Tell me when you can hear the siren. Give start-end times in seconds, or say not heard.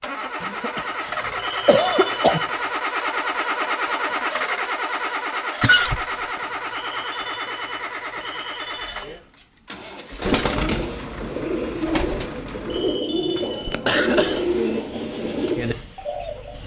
not heard.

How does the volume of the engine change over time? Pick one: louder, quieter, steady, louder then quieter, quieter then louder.
quieter.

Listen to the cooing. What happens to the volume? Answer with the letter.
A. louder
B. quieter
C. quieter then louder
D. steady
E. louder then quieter
D.